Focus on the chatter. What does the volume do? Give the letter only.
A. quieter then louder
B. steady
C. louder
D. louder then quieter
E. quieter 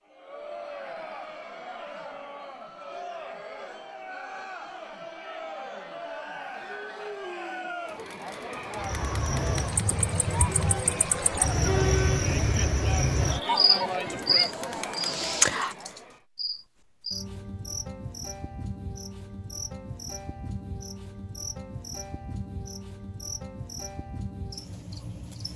C.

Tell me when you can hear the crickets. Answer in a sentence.
You can hear the crickets from 8.8 to 25.5 s.